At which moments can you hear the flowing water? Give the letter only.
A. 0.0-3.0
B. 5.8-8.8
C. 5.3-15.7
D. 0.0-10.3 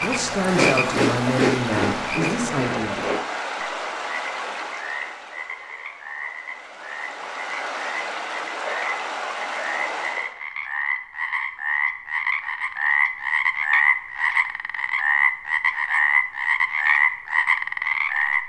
D.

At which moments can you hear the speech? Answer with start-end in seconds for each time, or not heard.
0.0-3.0.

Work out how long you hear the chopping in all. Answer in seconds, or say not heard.
not heard.